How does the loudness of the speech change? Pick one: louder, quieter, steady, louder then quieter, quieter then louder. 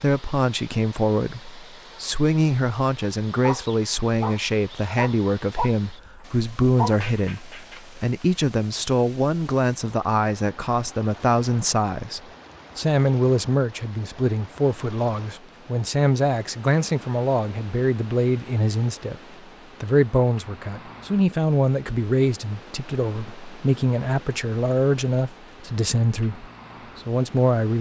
steady.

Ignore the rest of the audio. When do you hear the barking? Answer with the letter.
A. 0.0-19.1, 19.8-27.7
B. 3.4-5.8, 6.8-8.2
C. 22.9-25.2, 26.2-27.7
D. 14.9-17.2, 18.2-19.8
B.